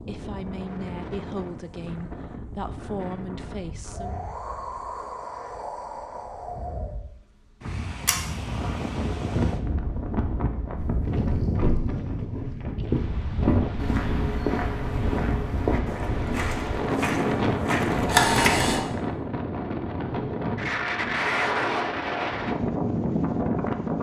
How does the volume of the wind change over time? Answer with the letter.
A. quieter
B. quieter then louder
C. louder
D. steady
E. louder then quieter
C.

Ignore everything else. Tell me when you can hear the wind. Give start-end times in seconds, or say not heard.
0.0-23.9.